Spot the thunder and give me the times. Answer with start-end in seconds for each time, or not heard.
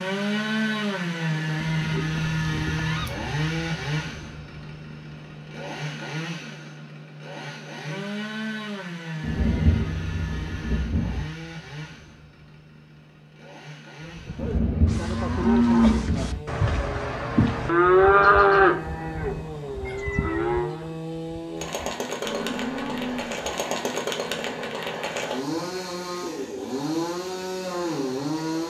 9.2-11.2, 14.3-16.4.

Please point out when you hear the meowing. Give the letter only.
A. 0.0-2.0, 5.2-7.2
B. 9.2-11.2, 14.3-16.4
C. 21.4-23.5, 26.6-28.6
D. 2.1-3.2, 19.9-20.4
D.